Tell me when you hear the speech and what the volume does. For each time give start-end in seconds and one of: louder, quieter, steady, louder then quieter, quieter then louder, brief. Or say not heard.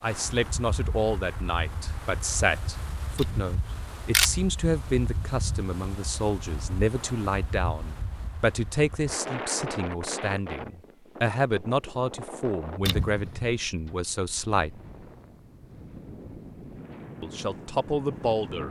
0.0-14.8 steady
17.2-18.6 brief.